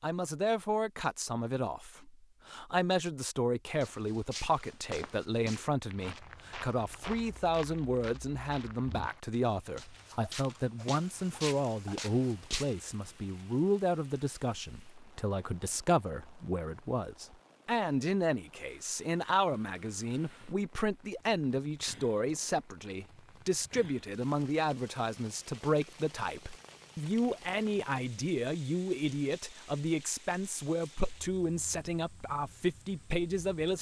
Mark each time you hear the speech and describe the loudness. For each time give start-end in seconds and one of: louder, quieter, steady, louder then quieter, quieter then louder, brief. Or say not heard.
0.0-33.7 steady.